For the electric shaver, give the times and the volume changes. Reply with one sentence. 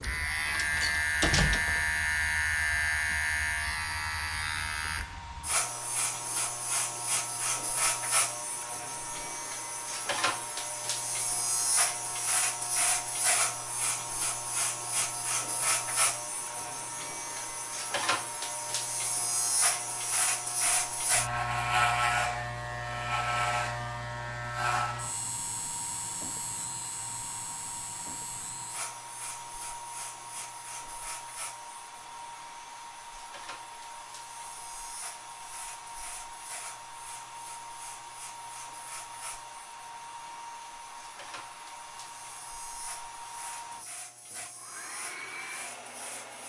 The electric shaver can be heard from 0.0 to 46.4 s, getting quieter.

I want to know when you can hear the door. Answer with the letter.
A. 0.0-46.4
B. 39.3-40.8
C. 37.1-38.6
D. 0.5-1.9
D.